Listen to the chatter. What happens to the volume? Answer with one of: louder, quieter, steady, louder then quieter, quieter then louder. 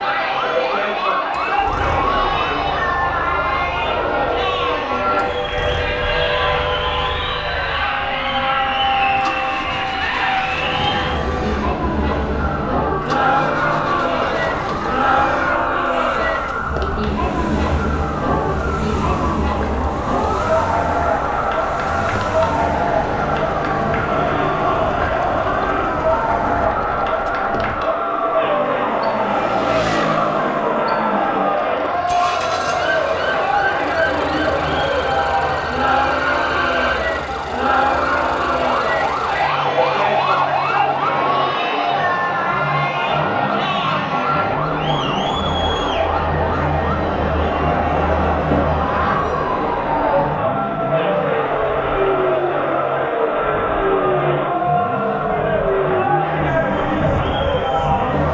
steady.